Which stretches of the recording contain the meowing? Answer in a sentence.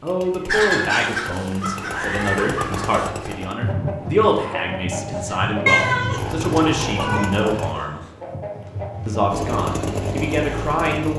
The meowing can be heard from 0.8 to 3.1 s and from 5.7 to 7.3 s.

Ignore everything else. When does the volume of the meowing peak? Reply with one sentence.
The volume of the meowing peaks at 6 seconds.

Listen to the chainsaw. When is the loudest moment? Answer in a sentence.
The volume of the chainsaw peaks at 10 seconds.